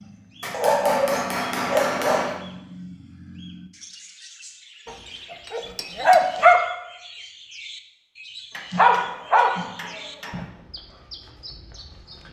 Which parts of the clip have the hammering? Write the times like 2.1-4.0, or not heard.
0.4-2.5, 4.8-6.3, 8.5-10.4.